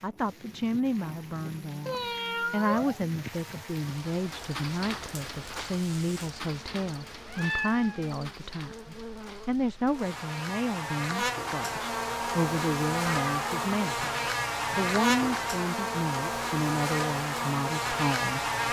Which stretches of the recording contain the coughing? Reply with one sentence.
The coughing can't be heard in this clip.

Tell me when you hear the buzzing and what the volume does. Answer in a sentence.
The buzzing can be heard from 0.0 to 18.6 s, getting louder.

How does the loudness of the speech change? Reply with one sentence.
The loudness of the speech stays about the same.